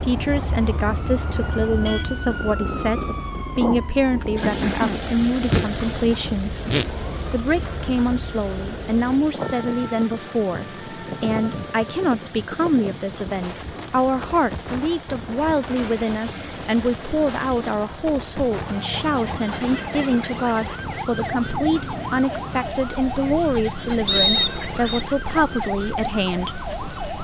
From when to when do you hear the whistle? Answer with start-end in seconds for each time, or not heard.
24.1-25.1.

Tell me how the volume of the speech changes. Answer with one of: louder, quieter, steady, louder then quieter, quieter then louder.
steady.